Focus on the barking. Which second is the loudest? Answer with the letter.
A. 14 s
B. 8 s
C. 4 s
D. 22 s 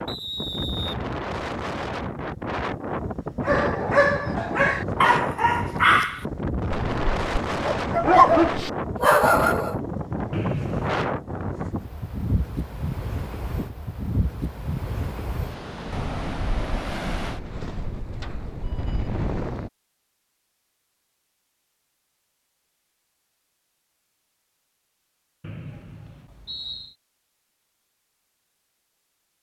B.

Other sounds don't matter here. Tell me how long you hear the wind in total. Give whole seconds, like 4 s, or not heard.
20 s.